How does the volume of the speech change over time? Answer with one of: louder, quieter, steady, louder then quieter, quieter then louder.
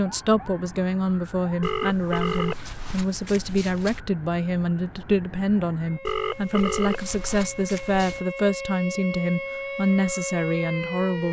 steady.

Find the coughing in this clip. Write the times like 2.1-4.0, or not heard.
not heard.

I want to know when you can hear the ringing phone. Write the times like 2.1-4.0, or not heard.
1.6-4.0, 6.0-8.2.